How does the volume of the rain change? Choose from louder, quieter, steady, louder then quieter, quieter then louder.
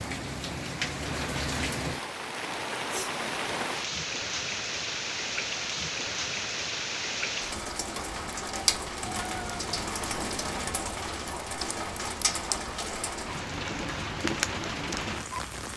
steady.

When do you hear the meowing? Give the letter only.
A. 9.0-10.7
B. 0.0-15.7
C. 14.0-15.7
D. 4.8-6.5
A.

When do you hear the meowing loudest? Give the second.
9 s.